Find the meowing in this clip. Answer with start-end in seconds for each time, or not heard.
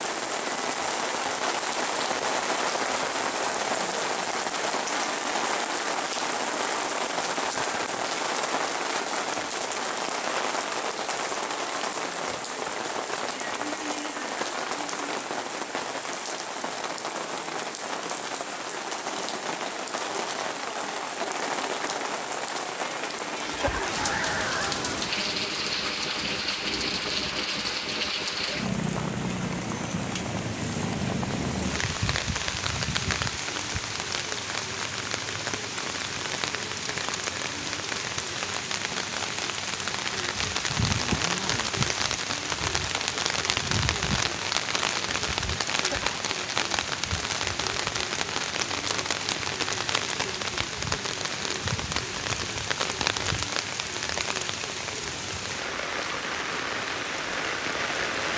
23.4-24.8, 45.7-46.1.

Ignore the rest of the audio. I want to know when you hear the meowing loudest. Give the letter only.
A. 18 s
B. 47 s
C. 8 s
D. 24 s
D.